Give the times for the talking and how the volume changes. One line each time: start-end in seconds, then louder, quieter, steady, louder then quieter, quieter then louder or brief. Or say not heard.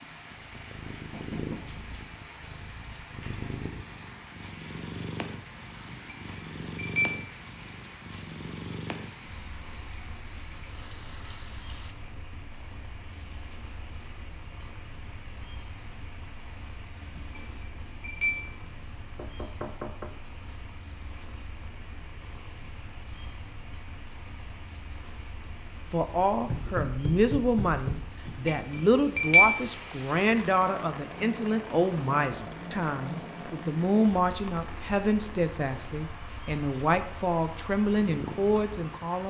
25.9-39.2 steady.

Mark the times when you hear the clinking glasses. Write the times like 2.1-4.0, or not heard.
5.9-7.2, 17.1-18.5, 28.2-29.6.